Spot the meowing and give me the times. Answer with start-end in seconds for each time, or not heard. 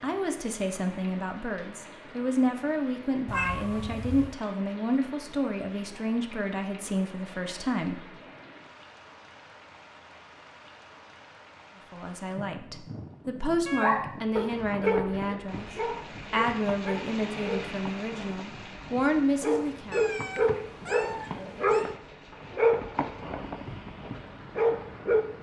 3.2-4.3, 13.7-14.1, 19.9-21.9.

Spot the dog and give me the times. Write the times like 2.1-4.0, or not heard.
13.8-25.2.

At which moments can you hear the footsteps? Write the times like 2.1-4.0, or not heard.
not heard.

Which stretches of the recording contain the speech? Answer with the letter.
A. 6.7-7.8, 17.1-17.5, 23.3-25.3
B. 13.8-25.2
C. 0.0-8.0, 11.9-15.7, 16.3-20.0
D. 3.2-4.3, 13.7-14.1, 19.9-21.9
C.